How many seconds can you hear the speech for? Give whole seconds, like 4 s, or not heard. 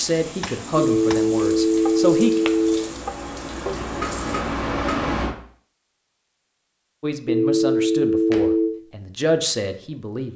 6 s.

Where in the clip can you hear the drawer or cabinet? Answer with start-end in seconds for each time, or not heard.
not heard.